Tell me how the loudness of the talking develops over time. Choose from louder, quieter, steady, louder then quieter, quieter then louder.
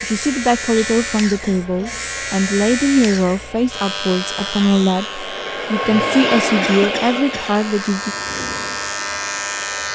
steady.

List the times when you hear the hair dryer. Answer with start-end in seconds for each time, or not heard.
0.0-9.9.